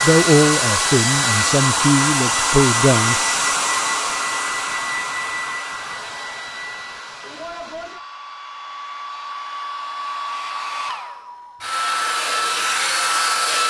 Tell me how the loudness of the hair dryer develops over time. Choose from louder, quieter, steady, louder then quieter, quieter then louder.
quieter then louder.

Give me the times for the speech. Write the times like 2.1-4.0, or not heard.
0.0-3.2.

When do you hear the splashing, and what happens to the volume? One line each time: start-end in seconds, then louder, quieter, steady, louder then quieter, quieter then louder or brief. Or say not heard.
not heard.